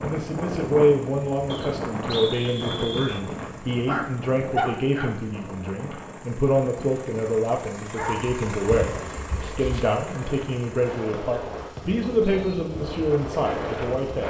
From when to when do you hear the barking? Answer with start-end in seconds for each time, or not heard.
3.9-5.1, 8.0-9.8.